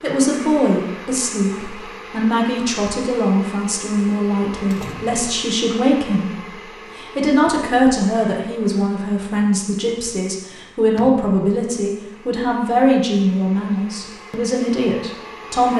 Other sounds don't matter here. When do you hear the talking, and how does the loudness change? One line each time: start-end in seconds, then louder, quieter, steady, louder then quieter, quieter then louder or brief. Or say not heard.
0.0-15.7 steady.